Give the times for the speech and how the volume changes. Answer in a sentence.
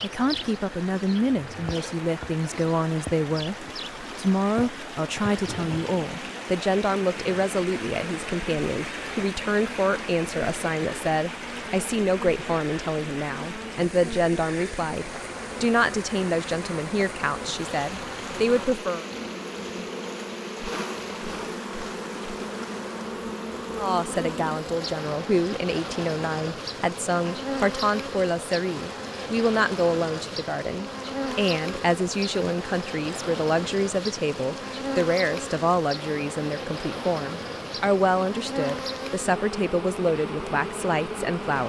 You can hear the speech from 0.0 to 19.1 s, at a steady volume; and from 23.8 to 41.6 s, at a steady volume.